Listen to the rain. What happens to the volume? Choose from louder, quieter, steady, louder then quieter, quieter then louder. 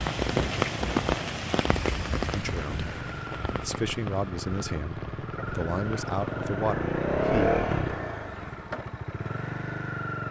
quieter.